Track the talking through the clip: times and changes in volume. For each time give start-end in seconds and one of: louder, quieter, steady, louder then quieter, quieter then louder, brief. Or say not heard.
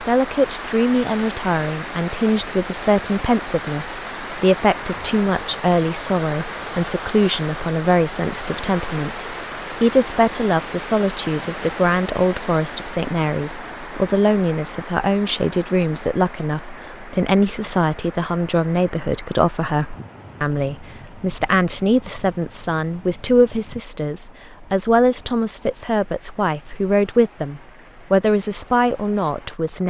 0.0-29.8 steady.